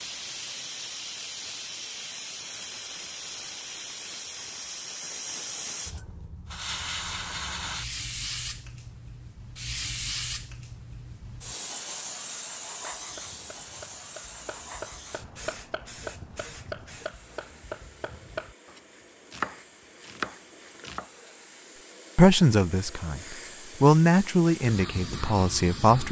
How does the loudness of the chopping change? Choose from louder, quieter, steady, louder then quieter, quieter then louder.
louder.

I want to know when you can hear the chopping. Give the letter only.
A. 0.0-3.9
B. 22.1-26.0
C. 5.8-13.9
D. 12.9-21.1
D.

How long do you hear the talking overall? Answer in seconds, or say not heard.
4 s.